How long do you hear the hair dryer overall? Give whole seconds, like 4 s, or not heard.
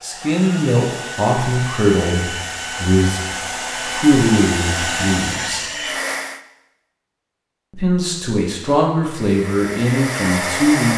8 s.